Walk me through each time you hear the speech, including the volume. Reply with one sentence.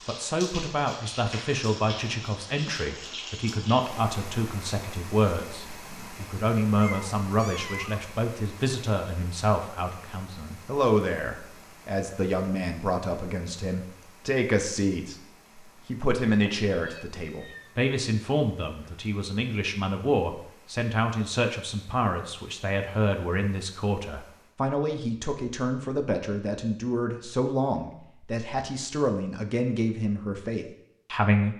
You can hear the speech from 0.1 to 15.2 s, at a steady volume; and from 15.8 to 31.5 s, at a steady volume.